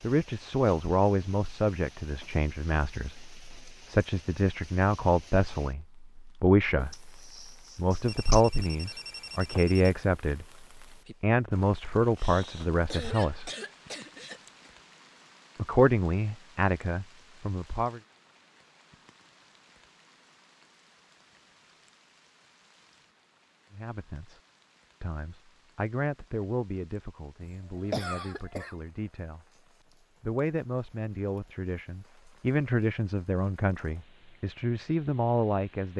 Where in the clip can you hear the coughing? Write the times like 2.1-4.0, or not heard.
6.9-8.4, 12.2-14.7, 27.4-28.8.